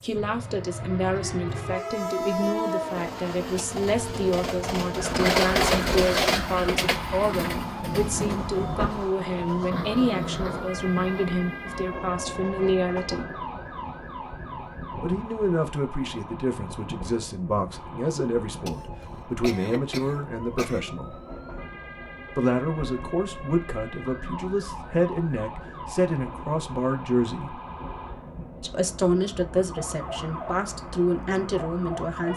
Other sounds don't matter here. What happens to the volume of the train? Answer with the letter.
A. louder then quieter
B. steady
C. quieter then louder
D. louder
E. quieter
E.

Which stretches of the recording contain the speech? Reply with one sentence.
The speech can be heard from 0.0 to 13.2 s, from 14.9 to 21.1 s, from 22.4 to 27.6 s and from 28.6 to 32.3 s.